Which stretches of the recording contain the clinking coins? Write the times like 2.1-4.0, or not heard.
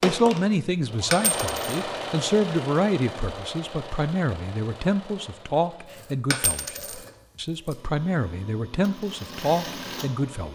1.1-1.8, 6.3-7.0.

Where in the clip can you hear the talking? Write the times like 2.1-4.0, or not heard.
0.0-10.5.